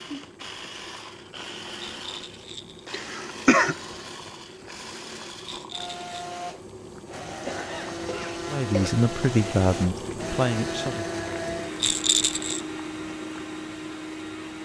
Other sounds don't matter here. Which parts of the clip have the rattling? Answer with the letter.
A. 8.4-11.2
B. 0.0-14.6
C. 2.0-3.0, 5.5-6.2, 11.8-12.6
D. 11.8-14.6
C.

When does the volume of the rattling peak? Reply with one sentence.
The volume of the rattling peaks at 12 seconds.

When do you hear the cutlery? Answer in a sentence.
The cutlery can't be heard in this clip.